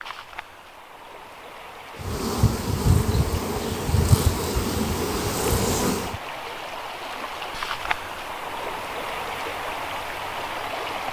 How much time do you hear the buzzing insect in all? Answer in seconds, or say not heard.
4 s.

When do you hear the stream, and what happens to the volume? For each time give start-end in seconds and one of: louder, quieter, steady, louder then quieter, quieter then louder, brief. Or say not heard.
0.0-11.0 louder.